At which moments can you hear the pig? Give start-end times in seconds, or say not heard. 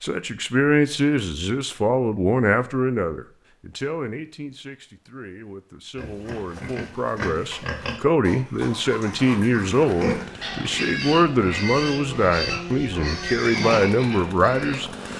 6.0-15.0.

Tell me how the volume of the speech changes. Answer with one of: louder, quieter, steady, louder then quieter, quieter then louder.
quieter then louder.